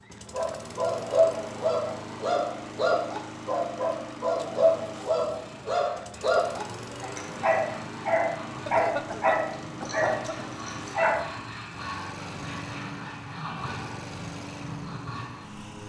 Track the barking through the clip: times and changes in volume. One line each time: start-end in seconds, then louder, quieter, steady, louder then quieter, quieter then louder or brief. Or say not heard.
0.3-11.2 steady.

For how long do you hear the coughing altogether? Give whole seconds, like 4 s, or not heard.
2 s.